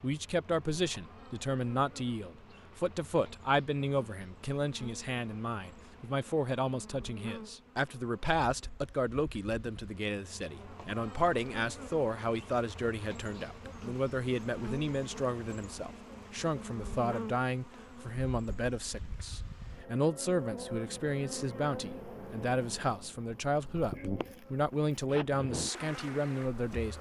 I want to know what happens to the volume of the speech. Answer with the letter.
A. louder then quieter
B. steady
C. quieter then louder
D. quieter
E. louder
B.